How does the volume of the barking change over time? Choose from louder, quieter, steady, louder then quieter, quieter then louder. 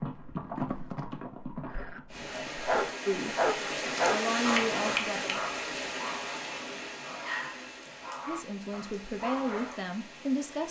quieter.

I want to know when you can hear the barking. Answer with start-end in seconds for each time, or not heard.
1.7-9.8.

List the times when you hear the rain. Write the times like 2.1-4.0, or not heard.
2.0-10.6.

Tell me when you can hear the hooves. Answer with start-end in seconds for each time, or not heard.
0.0-3.0.